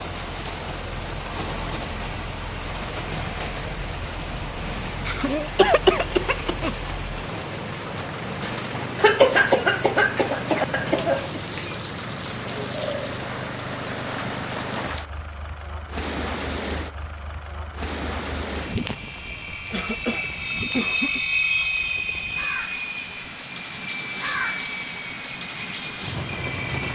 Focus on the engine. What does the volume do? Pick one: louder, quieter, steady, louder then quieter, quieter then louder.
louder.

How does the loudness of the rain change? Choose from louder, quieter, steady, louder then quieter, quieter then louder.
steady.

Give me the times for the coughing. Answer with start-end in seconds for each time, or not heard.
4.8-6.8, 8.9-11.4, 19.7-21.2.